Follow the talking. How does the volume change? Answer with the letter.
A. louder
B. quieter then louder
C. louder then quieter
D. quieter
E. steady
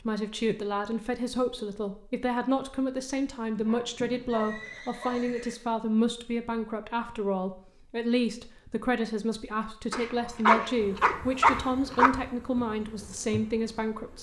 E.